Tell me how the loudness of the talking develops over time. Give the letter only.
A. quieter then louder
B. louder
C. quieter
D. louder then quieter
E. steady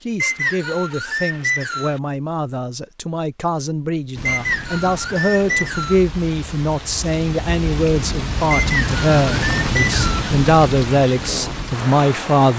B.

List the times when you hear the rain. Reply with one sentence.
The rain can be heard from 4.2 to 12.5 s.